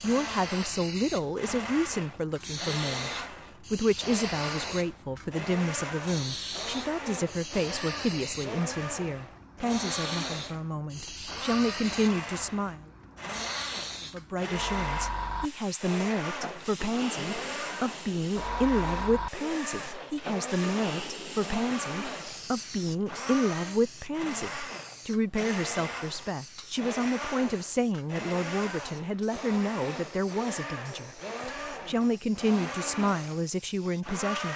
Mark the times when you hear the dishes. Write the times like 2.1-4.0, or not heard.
not heard.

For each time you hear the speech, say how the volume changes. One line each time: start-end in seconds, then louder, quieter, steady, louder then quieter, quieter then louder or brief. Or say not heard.
0.0-12.8 steady
14.1-34.5 steady.